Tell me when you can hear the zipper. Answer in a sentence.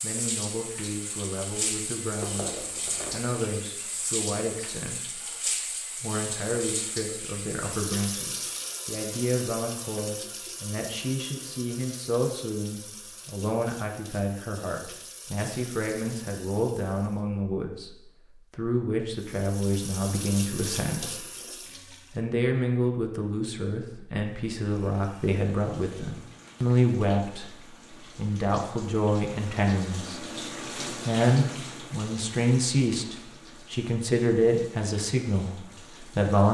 You can hear the zipper from 2.2 to 3.2 s.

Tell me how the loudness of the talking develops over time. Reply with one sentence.
The volume of the talking goes up.